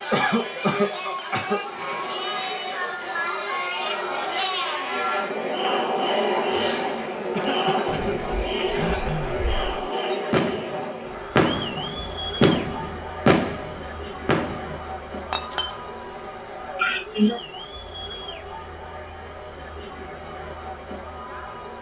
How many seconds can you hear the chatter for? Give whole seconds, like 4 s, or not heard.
22 s.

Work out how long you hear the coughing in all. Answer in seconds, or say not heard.
4 s.